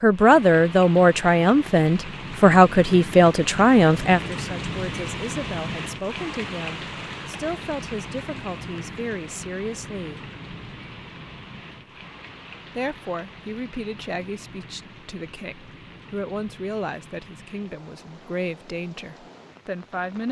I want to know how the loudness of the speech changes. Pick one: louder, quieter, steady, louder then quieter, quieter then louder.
quieter.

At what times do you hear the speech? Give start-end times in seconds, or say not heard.
0.0-10.2, 12.8-20.2.